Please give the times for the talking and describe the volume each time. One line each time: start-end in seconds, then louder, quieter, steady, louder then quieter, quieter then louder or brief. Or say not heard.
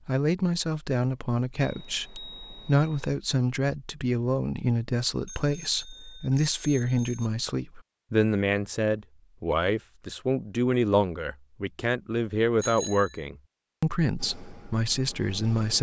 0.1-15.7 steady.